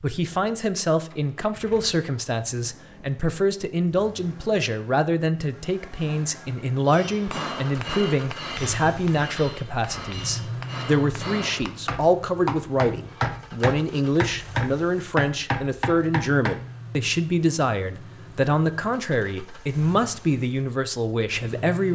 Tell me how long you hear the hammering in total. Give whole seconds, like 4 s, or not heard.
10 s.